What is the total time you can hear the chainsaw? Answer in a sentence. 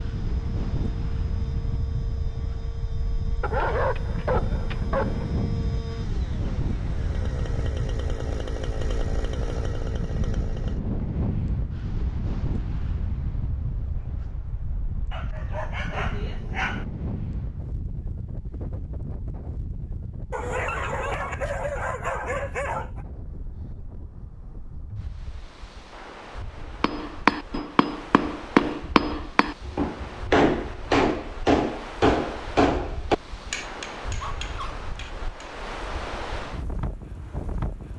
You can hear the chainsaw for 11 seconds altogether.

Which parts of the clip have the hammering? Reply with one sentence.
The hammering can be heard from 26.8 to 35.5 s.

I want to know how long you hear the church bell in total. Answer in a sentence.
The church bell can't be heard in this clip.